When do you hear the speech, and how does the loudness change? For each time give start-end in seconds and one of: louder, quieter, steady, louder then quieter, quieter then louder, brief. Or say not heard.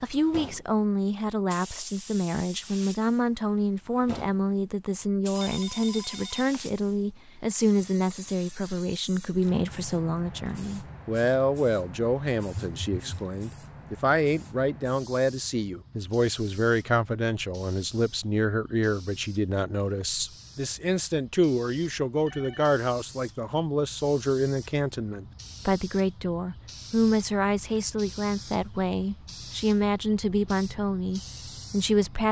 0.0-32.2 steady.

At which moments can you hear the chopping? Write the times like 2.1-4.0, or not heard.
not heard.